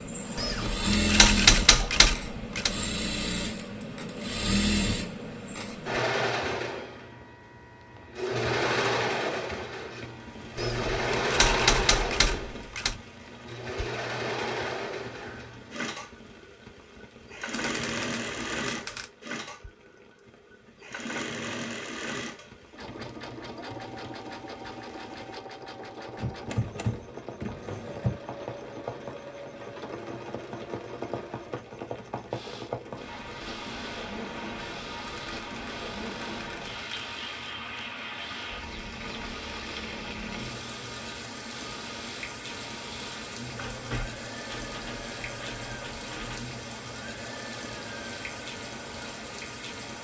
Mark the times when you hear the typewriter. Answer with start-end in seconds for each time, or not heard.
0.3-2.7, 10.6-12.9, 17.6-19.1, 26.1-28.2, 35.2-37.0, 43.5-46.5.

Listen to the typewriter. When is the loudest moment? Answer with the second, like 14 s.
1 s.